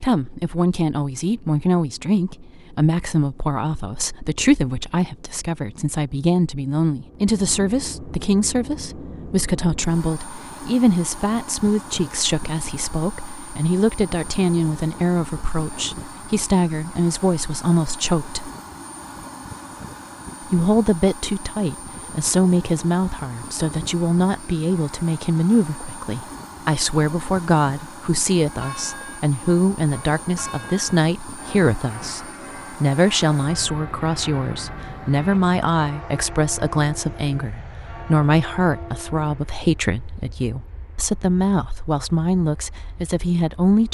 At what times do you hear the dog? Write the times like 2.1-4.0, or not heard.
not heard.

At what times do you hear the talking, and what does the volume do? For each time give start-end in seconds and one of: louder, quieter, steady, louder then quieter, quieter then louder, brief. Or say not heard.
0.0-18.5 steady
20.5-43.8 steady.